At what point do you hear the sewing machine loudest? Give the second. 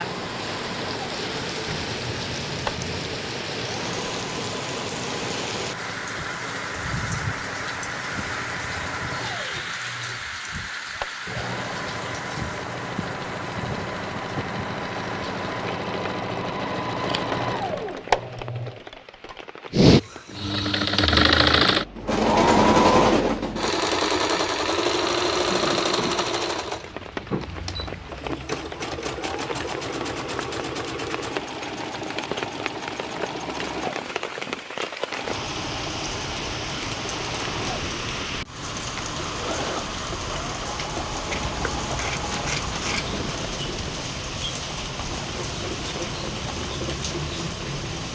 23 s.